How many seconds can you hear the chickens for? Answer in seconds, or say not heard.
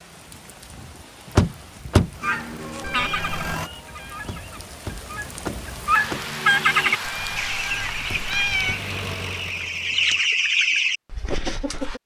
10 s.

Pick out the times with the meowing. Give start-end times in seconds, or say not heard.
2.8-3.4, 7.0-8.8.